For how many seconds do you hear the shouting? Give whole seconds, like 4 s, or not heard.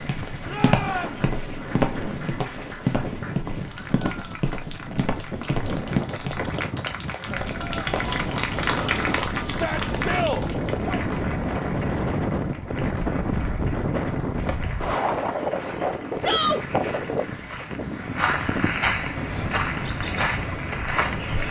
3 s.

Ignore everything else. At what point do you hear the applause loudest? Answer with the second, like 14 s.
9 s.